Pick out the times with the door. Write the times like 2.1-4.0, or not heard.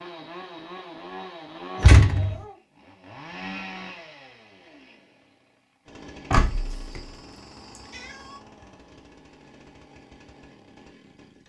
1.8-2.4, 6.3-7.0.